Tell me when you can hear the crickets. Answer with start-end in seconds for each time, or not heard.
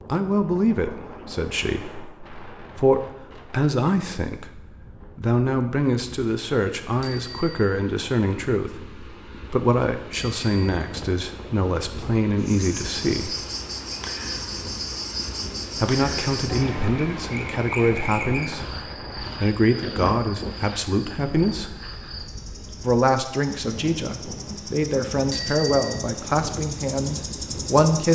12.4-28.1.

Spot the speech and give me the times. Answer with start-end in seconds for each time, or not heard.
0.1-13.3, 15.8-21.8, 22.8-28.1.